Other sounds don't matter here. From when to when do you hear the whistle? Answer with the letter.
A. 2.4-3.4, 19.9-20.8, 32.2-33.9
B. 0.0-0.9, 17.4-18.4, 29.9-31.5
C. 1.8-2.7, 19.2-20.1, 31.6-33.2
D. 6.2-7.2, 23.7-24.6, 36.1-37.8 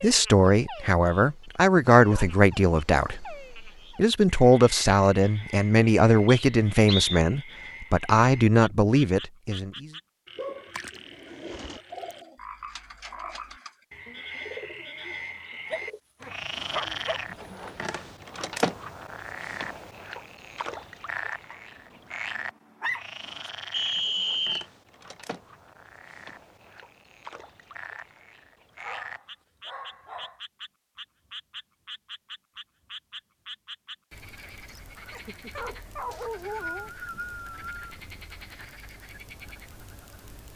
D.